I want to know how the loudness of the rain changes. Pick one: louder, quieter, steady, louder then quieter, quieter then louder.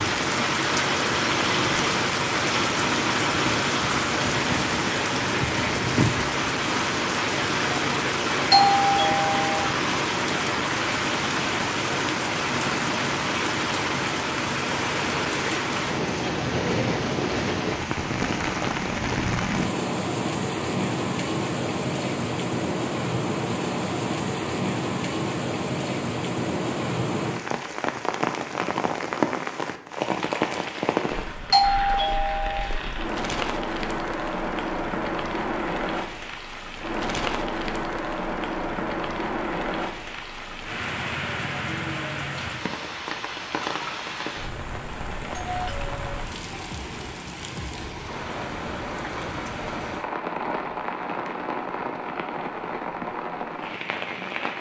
quieter.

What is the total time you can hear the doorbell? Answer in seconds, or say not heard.
3 s.